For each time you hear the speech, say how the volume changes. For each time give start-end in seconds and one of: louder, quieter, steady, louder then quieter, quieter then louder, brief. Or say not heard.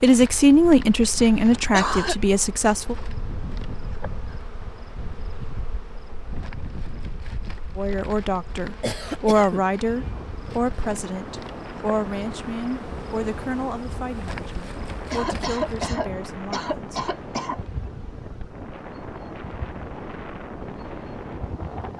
0.0-3.0 brief
7.8-16.9 quieter.